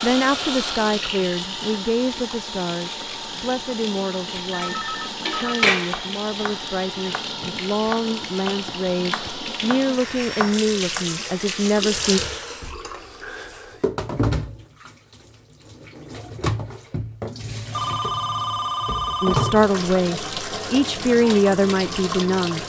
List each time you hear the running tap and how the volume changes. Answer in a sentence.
The running tap can be heard from 0.0 to 22.6 s, at a steady volume.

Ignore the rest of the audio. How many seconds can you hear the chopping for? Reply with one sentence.
You can hear the chopping for 5 seconds altogether.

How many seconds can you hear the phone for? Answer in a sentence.
You can hear the phone for 4 seconds altogether.